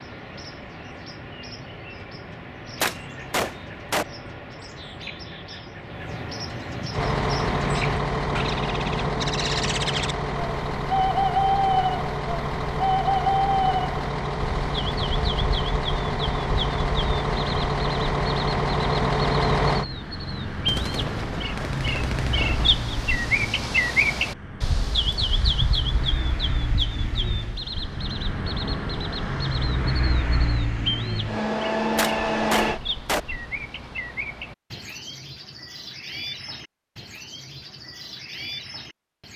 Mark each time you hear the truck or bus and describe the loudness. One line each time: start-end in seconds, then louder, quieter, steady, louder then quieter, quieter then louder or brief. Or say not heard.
6.9-32.8 quieter then louder.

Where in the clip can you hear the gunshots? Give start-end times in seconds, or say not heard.
2.8-4.0, 20.6-22.7, 31.9-33.2.